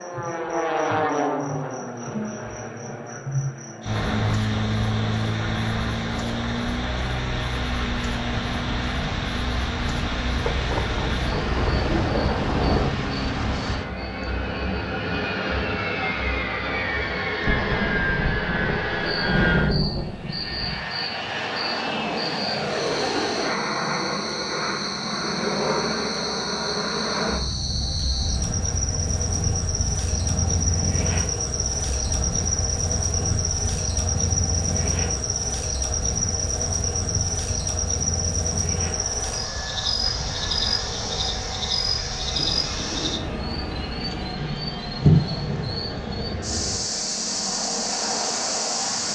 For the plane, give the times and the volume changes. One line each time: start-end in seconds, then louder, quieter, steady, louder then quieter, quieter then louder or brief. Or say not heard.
0.0-49.1 quieter.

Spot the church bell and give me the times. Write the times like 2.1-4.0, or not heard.
not heard.